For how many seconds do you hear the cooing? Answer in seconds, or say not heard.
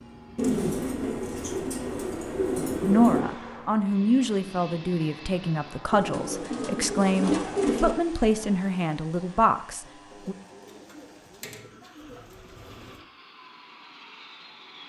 8 s.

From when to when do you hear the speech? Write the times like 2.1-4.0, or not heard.
2.9-10.3.